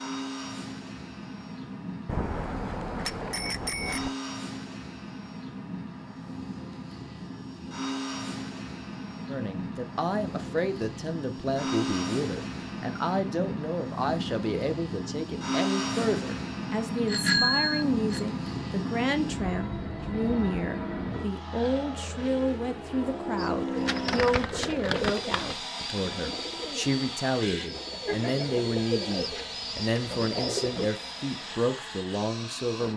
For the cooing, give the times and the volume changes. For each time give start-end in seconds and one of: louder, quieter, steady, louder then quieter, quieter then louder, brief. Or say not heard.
23.4-30.9 quieter then louder.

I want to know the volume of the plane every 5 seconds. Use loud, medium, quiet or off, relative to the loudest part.
medium, medium, loud, loud, loud, medium, medium.